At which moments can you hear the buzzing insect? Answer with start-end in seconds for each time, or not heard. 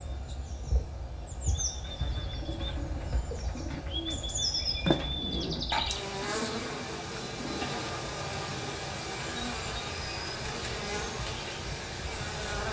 0.0-12.6.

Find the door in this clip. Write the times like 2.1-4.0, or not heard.
4.8-5.7.